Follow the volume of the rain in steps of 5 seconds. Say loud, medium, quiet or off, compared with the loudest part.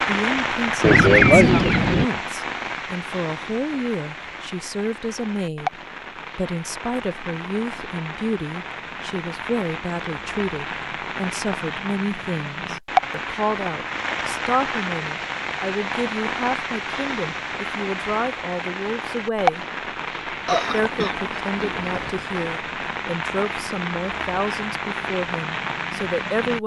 loud, medium, loud, loud, loud, loud.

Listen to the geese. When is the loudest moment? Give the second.
1 s.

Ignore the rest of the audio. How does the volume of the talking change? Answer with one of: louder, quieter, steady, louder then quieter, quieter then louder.
steady.